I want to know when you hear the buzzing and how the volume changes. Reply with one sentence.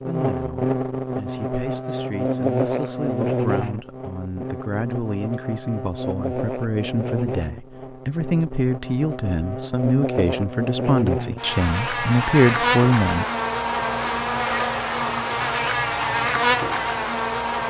The buzzing can be heard from 0.0 to 17.6 s, getting quieter then louder.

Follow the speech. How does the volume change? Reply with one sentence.
The volume of the speech goes up.